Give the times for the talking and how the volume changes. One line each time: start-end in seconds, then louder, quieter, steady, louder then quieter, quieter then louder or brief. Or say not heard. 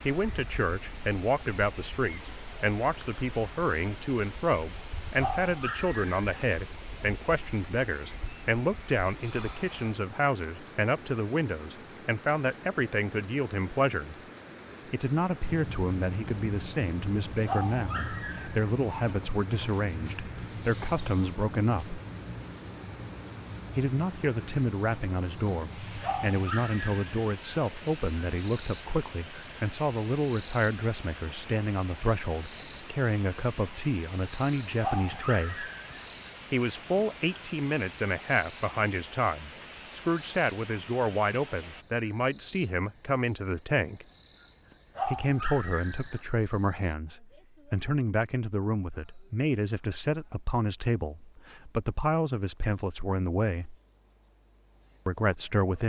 0.0-14.2 steady
14.9-22.0 steady
23.8-35.7 steady
36.5-44.0 steady
45.0-53.8 steady
55.0-55.8 brief.